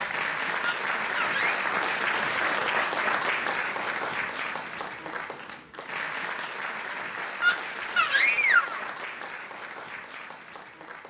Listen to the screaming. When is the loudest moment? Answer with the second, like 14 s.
8 s.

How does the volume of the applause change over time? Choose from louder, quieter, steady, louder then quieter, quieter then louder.
quieter.